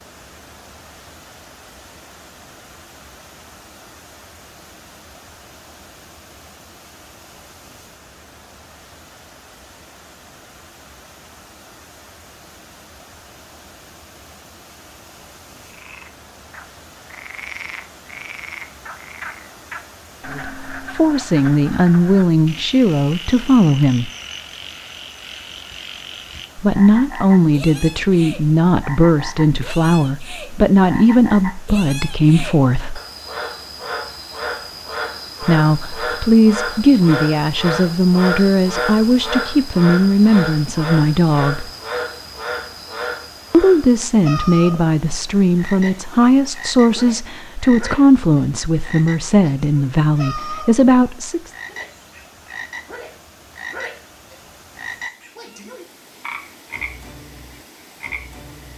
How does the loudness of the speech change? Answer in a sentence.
The volume of the speech stays about the same.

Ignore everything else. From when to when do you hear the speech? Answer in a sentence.
You can hear the speech from 20.3 to 24.1 s, from 26.6 to 33.0 s, from 35.4 to 41.7 s and from 43.5 to 51.5 s.